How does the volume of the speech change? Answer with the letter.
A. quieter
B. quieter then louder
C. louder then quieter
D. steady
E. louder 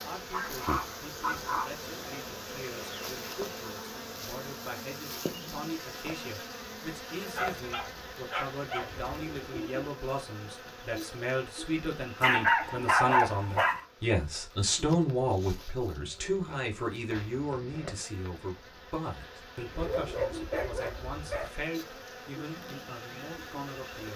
C.